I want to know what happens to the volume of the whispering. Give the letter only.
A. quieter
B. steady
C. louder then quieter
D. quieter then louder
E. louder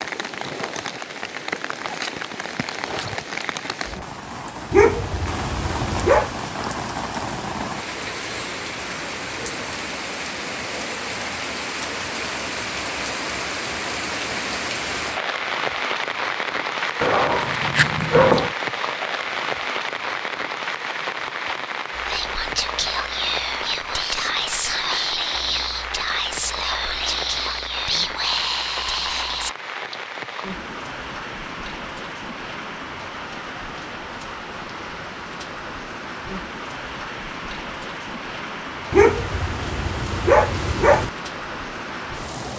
B.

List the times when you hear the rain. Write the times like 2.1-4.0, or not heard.
0.0-42.5.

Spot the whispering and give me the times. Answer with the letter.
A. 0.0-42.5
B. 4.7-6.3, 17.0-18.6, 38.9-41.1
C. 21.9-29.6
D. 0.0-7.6
C.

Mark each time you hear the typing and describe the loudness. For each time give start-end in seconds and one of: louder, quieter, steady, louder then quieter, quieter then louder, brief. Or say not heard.
not heard.